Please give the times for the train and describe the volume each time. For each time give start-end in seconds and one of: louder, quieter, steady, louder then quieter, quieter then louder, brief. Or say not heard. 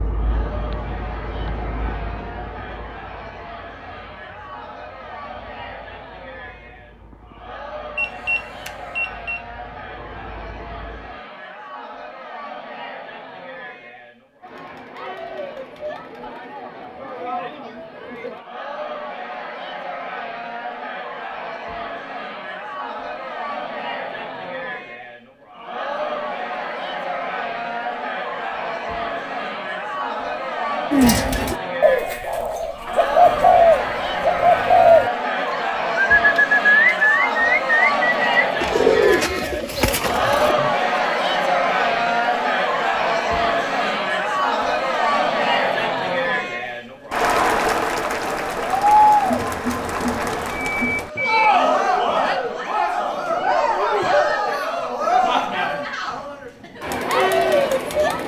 0.0-11.2 quieter then louder.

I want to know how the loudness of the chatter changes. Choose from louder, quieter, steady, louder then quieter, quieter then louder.
louder.